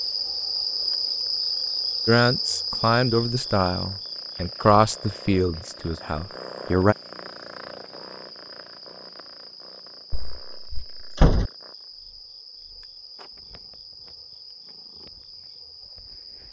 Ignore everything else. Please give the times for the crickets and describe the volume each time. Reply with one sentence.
You can hear the crickets from 0.0 to 16.4 s, getting quieter.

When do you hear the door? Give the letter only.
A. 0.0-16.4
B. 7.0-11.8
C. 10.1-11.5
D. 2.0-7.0
C.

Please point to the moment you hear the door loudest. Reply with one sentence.
The loudest moment of the door is at 11 seconds.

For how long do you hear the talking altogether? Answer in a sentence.
You can hear the talking for 5 seconds altogether.